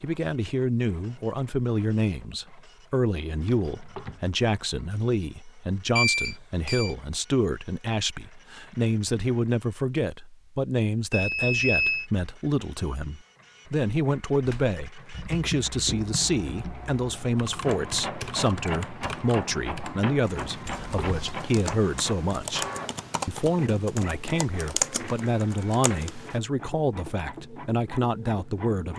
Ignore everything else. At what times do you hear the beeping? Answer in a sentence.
You can hear the beeping from 6.0 to 7.0 s, from 11.1 to 12.1 s and from 20.6 to 21.4 s.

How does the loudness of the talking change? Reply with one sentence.
The volume of the talking stays about the same.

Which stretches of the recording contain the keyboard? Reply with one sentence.
You can hear the keyboard from 14.4 to 26.4 s.